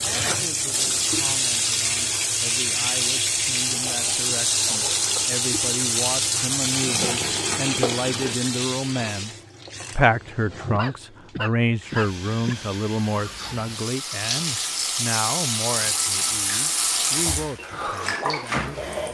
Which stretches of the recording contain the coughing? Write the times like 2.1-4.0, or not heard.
3.9-5.2, 10.6-12.6.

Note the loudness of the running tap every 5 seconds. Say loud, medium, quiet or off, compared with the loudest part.
loud, loud, medium, loud.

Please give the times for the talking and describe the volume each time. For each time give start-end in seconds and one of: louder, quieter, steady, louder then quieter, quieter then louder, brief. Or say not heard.
0.0-18.9 louder then quieter.